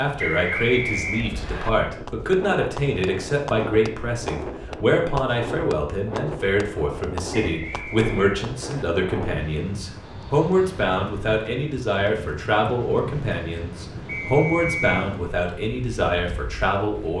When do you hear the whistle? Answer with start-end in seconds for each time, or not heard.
0.1-1.7, 7.3-8.8, 14.1-15.1.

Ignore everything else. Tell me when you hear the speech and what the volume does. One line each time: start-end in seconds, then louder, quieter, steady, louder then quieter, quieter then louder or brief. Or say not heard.
0.0-17.1 steady.